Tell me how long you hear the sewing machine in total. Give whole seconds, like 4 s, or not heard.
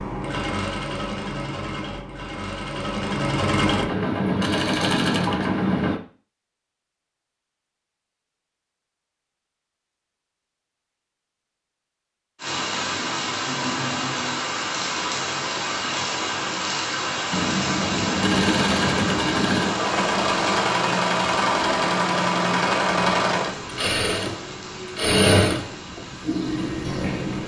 16 s.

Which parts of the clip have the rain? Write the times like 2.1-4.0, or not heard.
12.3-27.4.